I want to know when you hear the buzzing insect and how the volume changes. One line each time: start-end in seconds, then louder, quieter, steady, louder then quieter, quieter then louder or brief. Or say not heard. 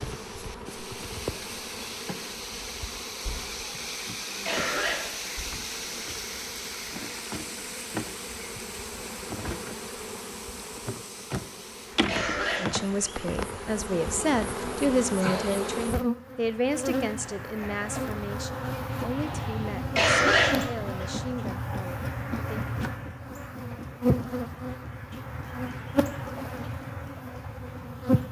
0.0-28.2 louder.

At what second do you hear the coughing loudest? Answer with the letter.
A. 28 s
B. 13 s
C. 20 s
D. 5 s
C.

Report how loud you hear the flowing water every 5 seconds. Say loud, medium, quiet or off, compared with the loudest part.
loud, loud, medium, off, off, off.